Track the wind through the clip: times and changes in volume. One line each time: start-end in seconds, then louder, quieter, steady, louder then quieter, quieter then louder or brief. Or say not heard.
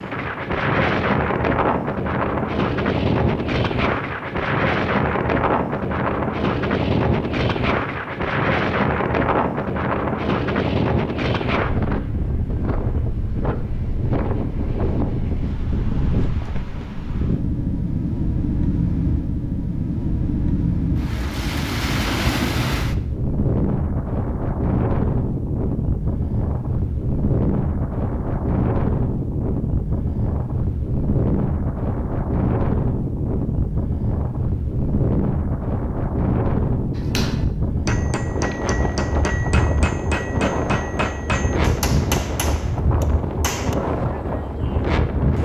0.0-45.4 steady.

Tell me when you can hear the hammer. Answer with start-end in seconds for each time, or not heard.
37.0-43.8.